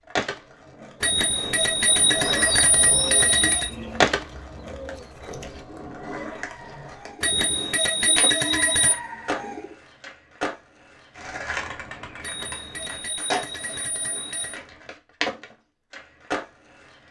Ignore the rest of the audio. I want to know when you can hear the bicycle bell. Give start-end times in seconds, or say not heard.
1.0-3.7, 7.2-8.9, 12.2-14.6.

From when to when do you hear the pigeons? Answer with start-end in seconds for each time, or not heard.
2.2-9.8.